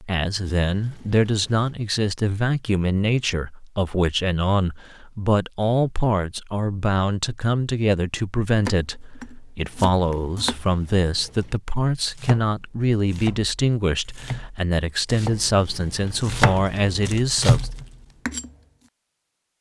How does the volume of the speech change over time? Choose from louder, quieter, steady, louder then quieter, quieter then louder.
steady.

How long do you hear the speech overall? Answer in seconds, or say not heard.
18 s.